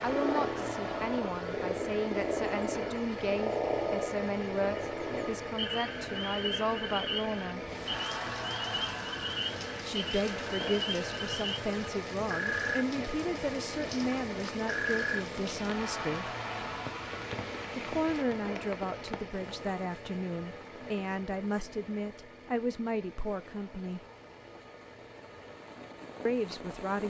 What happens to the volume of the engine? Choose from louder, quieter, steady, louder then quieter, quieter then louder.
quieter.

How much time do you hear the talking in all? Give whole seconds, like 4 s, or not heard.
21 s.